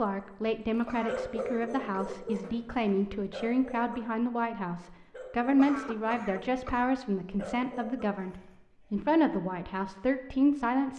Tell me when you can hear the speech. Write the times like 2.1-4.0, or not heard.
0.0-10.9.